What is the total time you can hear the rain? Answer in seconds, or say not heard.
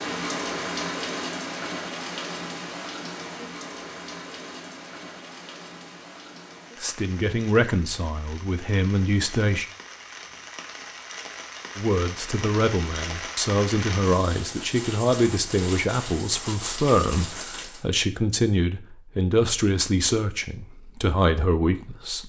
18 s.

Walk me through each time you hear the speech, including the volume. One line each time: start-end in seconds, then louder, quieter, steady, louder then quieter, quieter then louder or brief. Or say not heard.
6.8-9.7 brief
11.8-22.2 steady.